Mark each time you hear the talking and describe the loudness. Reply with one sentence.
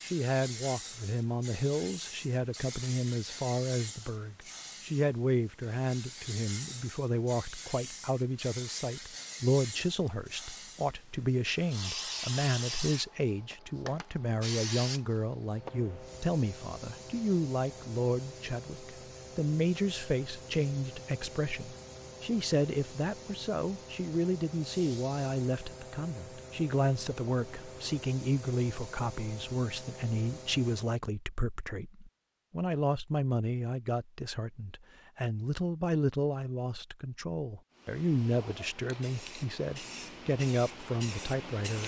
You can hear the talking from 0.0 to 41.8 s, at a steady volume.